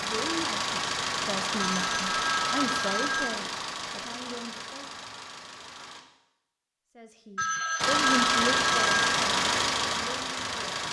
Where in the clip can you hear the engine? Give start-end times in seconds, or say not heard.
0.0-6.0, 7.8-10.8.